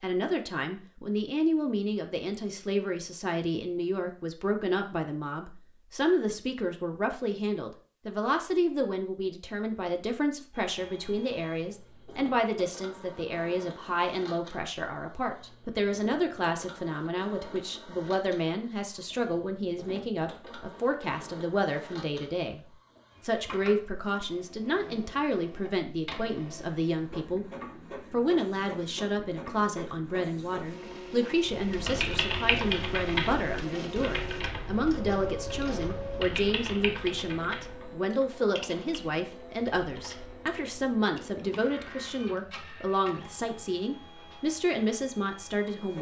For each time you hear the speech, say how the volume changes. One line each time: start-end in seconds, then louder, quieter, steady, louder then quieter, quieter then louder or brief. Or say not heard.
0.0-45.9 steady.